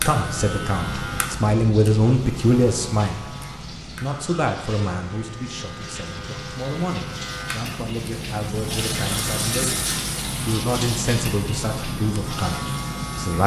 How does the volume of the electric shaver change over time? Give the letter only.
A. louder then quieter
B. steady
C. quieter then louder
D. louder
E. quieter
C.